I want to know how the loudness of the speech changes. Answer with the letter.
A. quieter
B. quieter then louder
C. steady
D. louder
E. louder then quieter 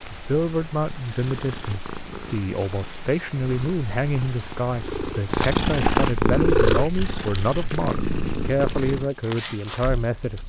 C.